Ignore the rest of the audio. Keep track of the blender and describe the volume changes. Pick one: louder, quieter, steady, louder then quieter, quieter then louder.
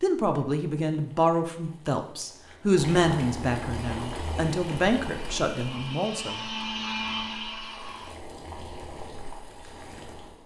louder.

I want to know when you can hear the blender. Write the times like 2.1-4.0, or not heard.
3.7-8.2.